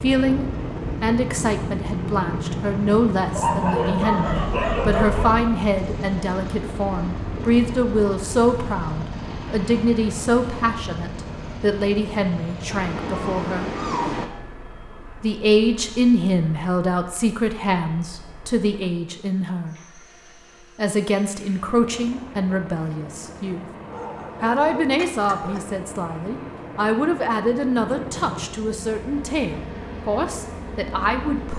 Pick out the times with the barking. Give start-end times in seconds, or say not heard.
3.4-5.4, 12.7-14.3, 23.9-25.7.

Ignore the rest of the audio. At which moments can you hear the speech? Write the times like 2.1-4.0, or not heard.
0.0-13.7, 15.2-19.8, 20.8-23.6, 24.4-31.5.